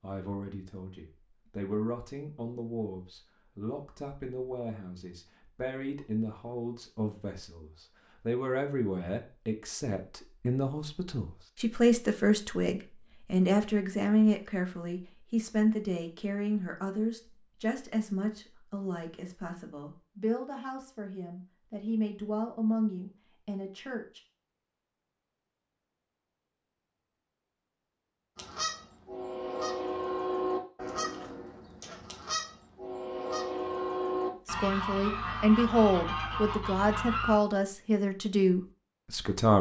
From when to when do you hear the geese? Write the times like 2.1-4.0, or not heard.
28.4-37.4.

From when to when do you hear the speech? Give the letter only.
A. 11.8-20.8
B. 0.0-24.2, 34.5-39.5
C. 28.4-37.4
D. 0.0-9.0
B.